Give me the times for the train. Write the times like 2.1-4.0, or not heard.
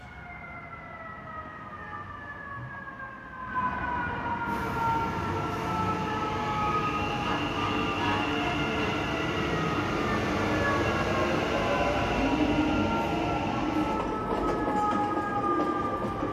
4.5-16.2.